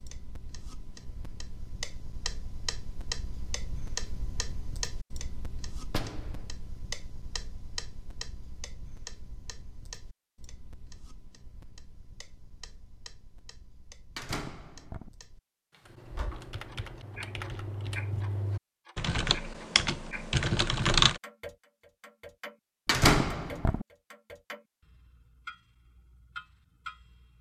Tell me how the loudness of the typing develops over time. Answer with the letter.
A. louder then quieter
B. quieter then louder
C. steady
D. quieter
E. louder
E.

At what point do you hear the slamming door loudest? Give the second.
23 s.